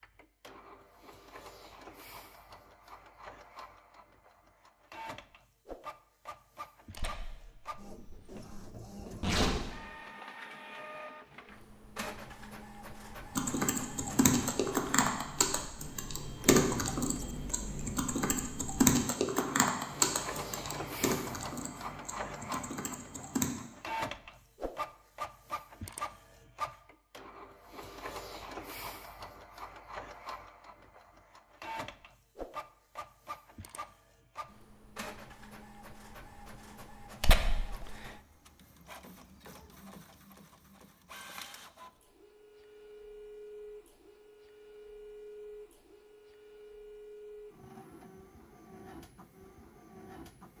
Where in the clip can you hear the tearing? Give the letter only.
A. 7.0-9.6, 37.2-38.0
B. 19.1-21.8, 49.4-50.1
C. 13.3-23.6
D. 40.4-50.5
A.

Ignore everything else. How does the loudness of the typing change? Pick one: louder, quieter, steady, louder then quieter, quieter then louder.
quieter.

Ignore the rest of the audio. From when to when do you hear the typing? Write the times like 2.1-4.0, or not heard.
13.3-23.6.